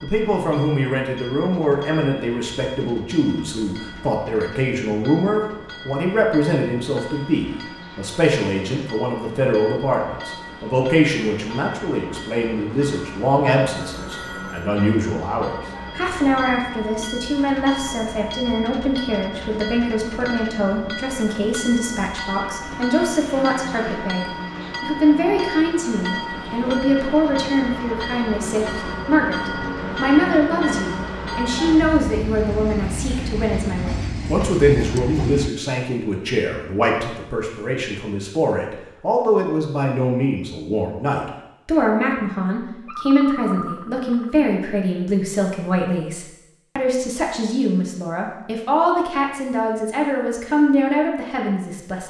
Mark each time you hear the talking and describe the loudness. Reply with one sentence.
The talking can be heard from 0.0 to 52.0 s, at a steady volume.